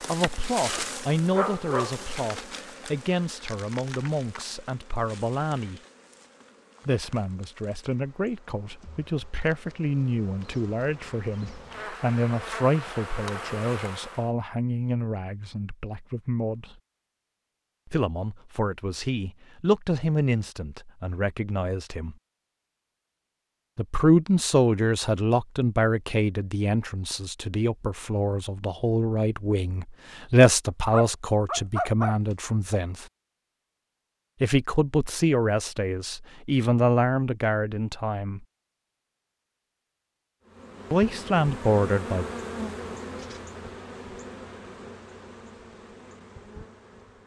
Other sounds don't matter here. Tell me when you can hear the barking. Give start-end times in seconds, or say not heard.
0.8-2.0, 30.9-32.1.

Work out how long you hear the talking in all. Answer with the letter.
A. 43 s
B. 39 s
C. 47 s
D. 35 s
D.